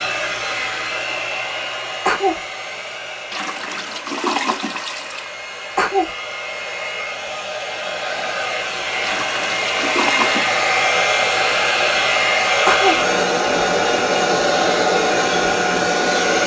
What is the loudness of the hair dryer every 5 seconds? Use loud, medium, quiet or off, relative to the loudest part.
medium, medium, loud, loud.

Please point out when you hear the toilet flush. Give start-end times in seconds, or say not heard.
3.3-5.3, 9.0-10.7.